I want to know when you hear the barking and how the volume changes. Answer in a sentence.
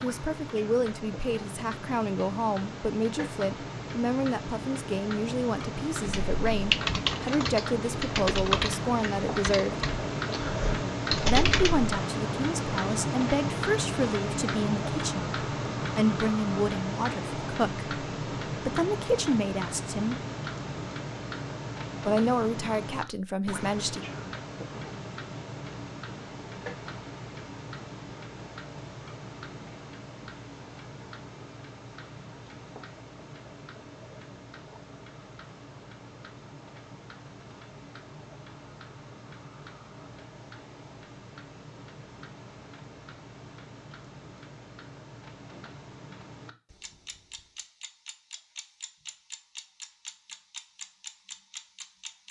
The barking can't be heard in this clip.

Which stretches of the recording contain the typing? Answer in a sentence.
You can hear the typing from 6.0 to 11.9 s.